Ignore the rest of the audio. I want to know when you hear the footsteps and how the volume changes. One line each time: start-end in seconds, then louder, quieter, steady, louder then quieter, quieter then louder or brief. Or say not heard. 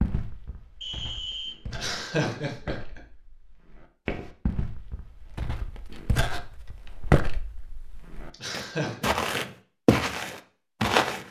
0.0-11.2 louder.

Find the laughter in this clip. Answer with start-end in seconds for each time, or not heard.
1.7-3.0, 8.3-9.1.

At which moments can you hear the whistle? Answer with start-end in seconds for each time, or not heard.
0.8-1.6.